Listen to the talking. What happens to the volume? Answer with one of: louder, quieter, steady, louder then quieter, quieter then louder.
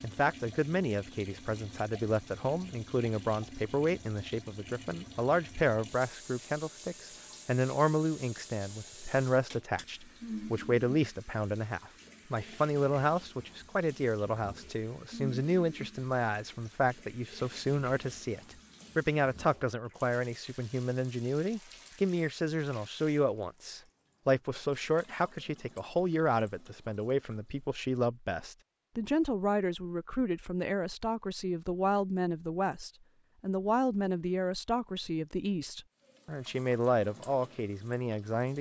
steady.